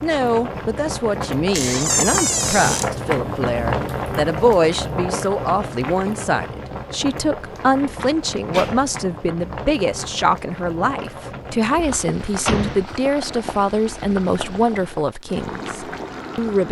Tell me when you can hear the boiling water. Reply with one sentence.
You can hear the boiling water from 0.0 to 16.6 s.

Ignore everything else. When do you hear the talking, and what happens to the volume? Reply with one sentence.
You can hear the talking from 0.0 to 16.6 s, at a steady volume.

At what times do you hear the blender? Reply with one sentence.
The blender can't be heard in this clip.